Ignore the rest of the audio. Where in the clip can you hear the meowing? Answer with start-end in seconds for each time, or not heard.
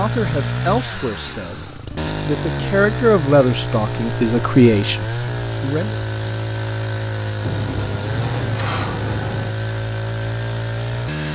not heard.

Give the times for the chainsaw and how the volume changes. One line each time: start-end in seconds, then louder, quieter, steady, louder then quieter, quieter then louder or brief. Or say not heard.
0.0-11.3 steady.